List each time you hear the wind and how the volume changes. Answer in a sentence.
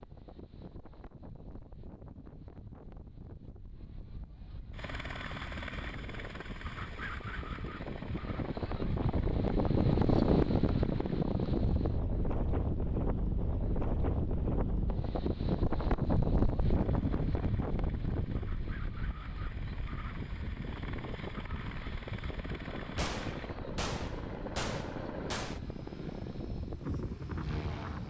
The wind can be heard from 0.0 to 28.0 s, getting louder then quieter.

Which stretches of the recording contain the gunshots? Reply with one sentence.
The gunshots can be heard from 22.9 to 25.6 s.